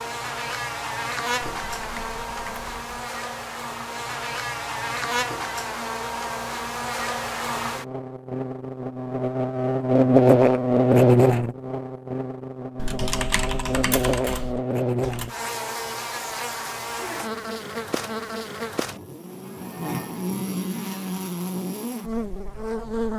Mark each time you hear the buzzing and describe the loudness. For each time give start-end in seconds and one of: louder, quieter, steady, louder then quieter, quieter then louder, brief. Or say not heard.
0.0-23.1 louder then quieter.